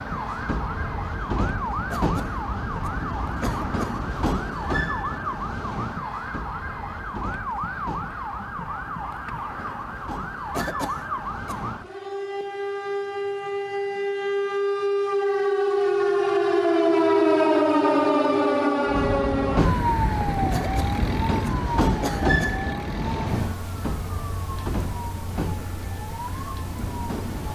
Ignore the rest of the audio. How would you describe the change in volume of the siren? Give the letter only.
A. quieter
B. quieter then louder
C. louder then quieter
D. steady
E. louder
C.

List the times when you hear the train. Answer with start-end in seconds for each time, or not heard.
0.0-11.9, 18.9-27.5.